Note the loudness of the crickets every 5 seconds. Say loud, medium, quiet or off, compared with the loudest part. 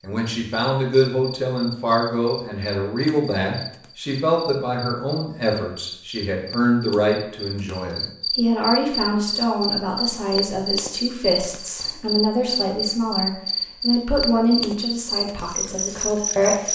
medium, loud, loud, loud.